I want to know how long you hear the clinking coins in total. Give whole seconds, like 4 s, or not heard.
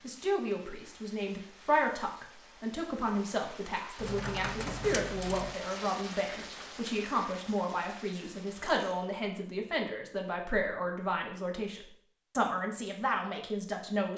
2 s.